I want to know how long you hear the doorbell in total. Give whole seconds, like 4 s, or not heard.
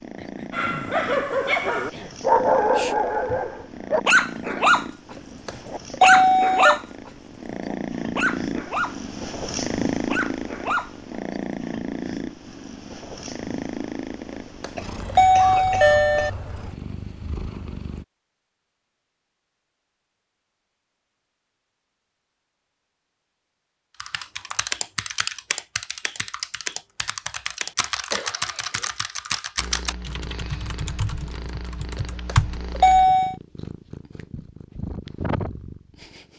4 s.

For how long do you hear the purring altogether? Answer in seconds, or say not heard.
25 s.